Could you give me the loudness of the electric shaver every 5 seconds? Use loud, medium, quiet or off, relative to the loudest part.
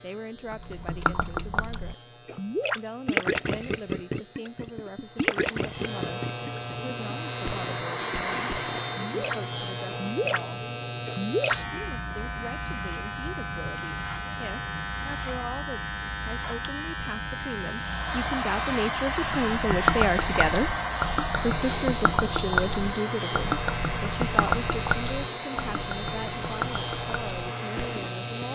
quiet, loud, loud, loud, loud, loud.